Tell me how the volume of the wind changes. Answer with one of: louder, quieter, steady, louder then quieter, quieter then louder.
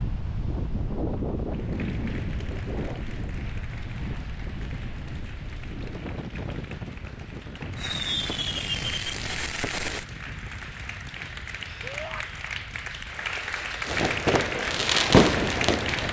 quieter.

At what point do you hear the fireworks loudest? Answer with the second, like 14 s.
15 s.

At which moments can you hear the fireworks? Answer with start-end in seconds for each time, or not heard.
7.8-10.1, 13.8-16.0.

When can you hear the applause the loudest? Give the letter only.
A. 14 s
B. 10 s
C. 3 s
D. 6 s
A.